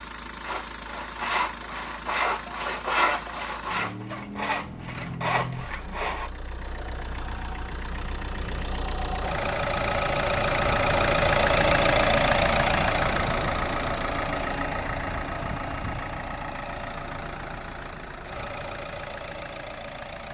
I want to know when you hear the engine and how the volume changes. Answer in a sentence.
The engine can be heard from 0.0 to 20.3 s, getting louder then quieter.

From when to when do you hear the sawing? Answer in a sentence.
You can hear the sawing from 0.4 to 6.3 s.